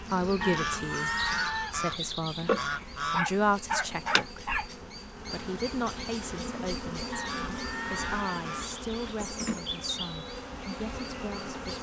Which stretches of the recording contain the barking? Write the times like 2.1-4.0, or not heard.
3.1-4.7.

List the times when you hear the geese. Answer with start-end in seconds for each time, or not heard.
0.4-3.2, 7.1-8.7.